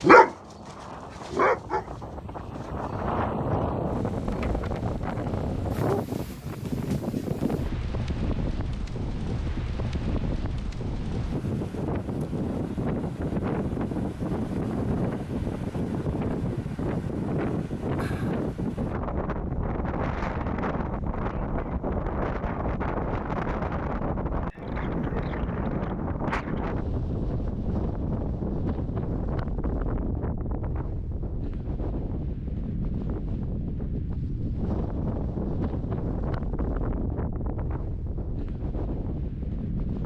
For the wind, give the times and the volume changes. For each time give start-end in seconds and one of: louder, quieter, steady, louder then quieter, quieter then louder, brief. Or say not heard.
0.1-40.0 steady.